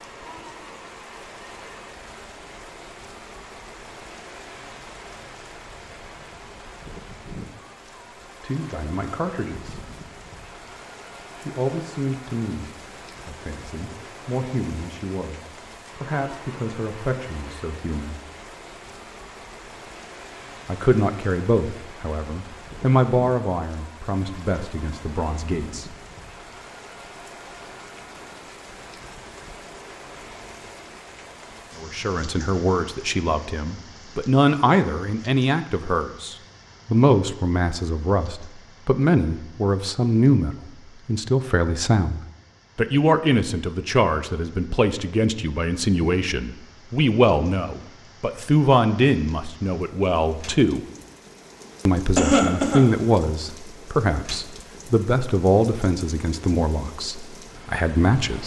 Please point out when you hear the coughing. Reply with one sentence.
You can hear the coughing from 52.1 to 52.9 s.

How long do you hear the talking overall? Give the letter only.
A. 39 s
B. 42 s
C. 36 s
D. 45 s
A.